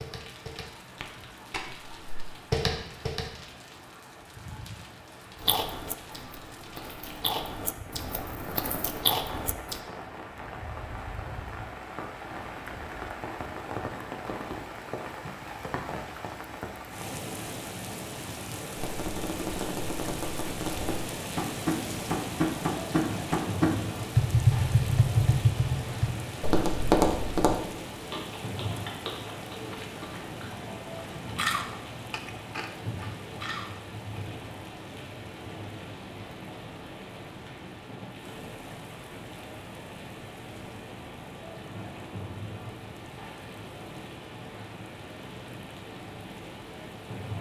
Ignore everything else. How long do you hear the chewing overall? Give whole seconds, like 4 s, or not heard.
11 s.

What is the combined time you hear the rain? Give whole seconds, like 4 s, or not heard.
47 s.